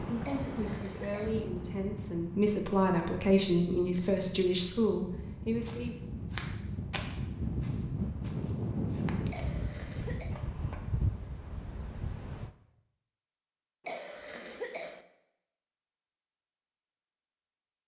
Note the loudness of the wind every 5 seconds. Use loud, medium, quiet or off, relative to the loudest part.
medium, loud, loud, off.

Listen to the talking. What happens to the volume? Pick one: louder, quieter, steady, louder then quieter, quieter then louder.
louder.